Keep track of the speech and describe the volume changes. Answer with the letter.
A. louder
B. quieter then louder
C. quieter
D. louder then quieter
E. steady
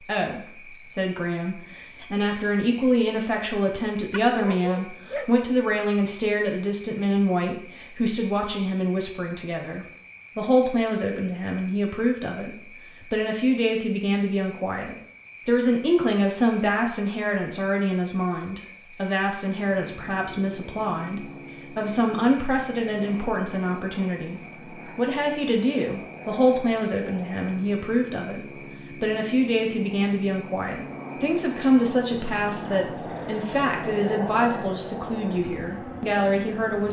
E.